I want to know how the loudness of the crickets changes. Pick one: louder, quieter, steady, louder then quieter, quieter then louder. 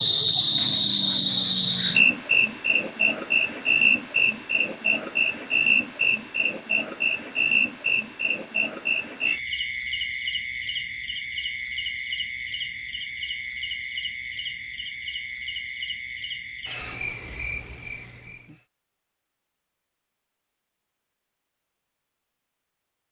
quieter.